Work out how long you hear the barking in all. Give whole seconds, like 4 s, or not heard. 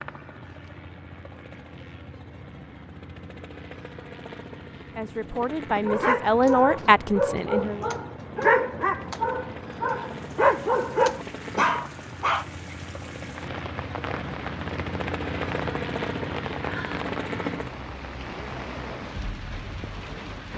7 s.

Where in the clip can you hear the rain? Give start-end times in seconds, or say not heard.
9.9-20.5.